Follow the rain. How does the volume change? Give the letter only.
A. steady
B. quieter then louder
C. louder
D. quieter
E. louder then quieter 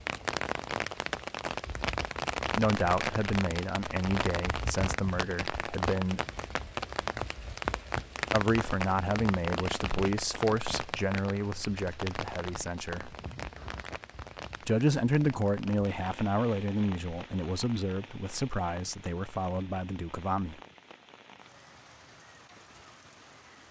D.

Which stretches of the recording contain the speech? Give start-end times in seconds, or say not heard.
2.5-6.2, 8.3-13.1, 14.7-20.6.